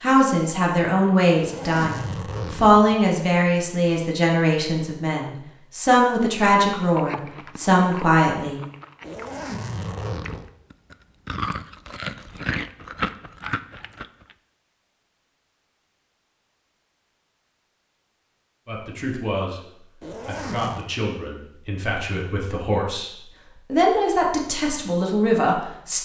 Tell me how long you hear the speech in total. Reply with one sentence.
The speech can be heard for 16 seconds in total.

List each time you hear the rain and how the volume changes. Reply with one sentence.
The rain can't be heard in this clip.